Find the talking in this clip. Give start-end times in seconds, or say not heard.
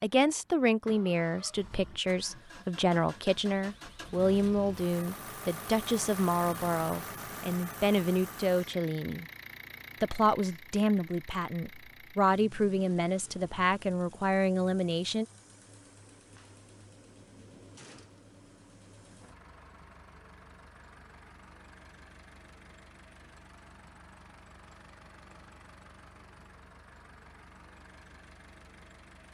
0.0-9.2, 10.0-15.2.